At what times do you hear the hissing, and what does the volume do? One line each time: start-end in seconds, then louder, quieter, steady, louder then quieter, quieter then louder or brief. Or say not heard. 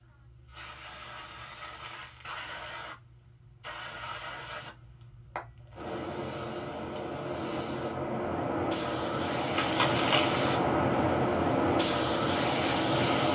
0.0-13.2 louder.